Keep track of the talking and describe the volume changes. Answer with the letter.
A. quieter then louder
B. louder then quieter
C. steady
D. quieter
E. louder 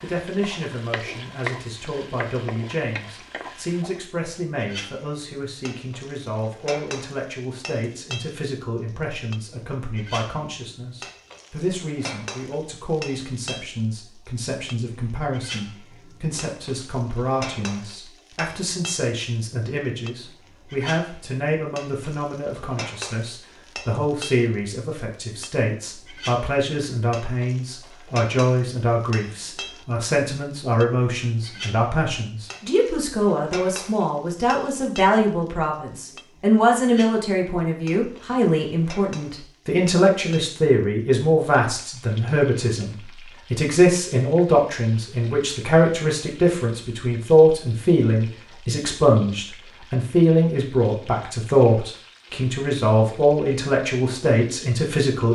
E.